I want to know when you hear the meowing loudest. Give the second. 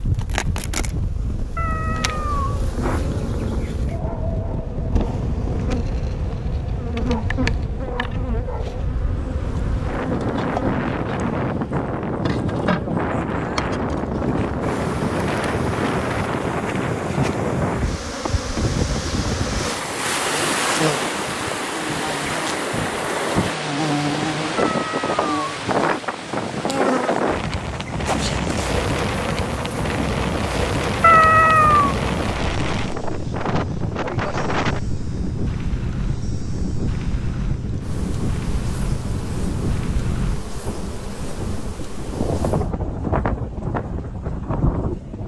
31 s.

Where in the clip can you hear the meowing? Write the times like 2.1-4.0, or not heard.
1.6-3.6, 24.6-26.0, 31.0-31.9.